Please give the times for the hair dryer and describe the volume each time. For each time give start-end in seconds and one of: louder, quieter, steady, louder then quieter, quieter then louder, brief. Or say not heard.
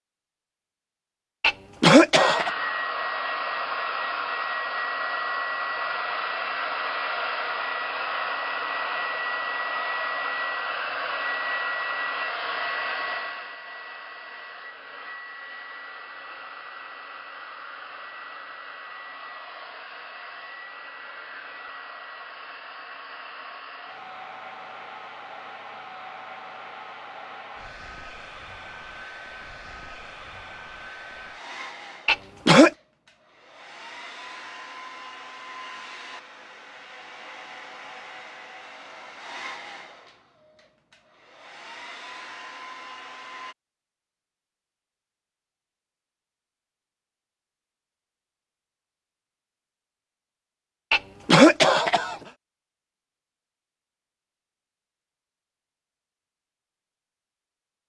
2.1-43.5 quieter.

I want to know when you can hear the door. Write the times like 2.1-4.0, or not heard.
not heard.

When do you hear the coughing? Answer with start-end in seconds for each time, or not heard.
1.4-2.5, 32.0-32.7, 50.9-52.1.